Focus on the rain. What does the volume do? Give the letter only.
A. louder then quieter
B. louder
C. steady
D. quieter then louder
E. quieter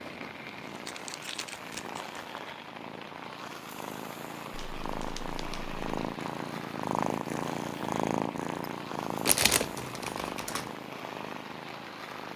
C.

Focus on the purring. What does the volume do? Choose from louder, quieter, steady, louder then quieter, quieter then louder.
louder then quieter.